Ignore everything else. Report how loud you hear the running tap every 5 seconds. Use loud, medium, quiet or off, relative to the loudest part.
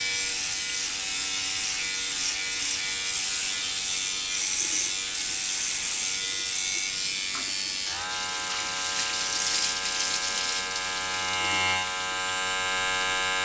medium, loud, loud.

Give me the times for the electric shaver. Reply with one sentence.
The electric shaver can be heard from 0.0 to 13.4 s.